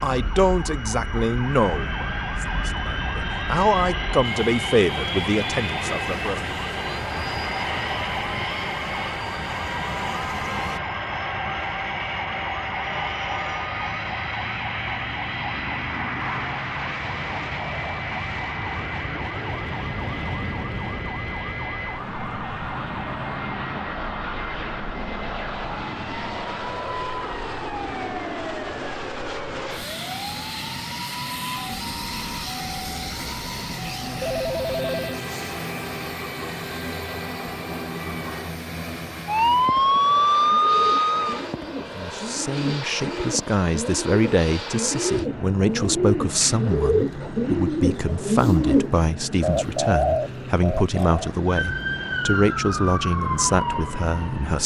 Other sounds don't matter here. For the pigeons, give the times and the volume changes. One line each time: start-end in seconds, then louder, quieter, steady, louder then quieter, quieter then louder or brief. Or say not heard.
40.4-51.2 louder.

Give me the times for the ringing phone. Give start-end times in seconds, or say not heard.
34.1-35.2.